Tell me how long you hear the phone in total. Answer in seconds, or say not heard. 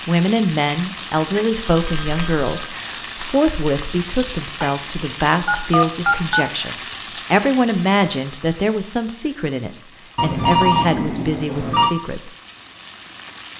4 s.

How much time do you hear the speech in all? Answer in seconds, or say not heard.
12 s.